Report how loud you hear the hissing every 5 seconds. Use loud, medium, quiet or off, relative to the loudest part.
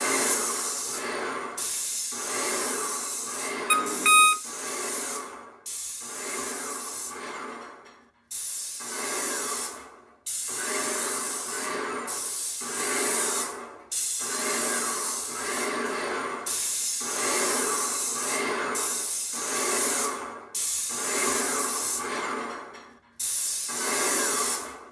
loud, medium, loud, loud, loud.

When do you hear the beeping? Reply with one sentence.
You can hear the beeping from 3.7 to 4.4 s.